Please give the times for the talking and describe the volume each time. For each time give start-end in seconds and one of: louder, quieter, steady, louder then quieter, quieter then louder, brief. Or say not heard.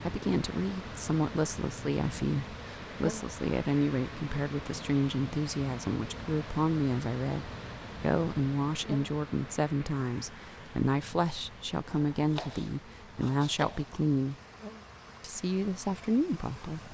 0.0-14.3 steady
15.2-16.8 brief.